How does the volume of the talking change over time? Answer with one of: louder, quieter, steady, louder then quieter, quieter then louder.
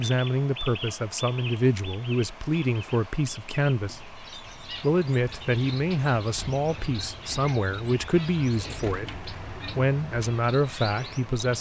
steady.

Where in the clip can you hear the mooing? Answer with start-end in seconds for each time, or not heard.
not heard.